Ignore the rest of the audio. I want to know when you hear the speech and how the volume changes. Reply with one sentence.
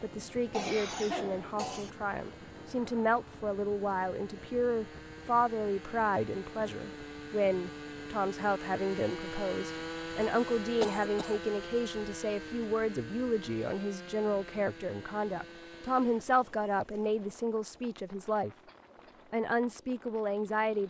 You can hear the speech from 0.0 to 18.6 s, at a steady volume; and briefly from 19.3 to 20.8 s.